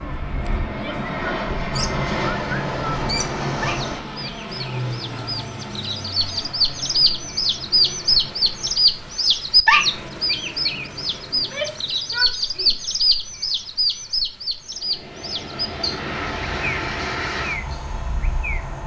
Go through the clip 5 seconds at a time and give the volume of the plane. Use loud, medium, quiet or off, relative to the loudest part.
loud, medium, quiet, loud.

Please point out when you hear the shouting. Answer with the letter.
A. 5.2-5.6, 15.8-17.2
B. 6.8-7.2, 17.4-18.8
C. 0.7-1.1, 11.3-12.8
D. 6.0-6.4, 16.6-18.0
C.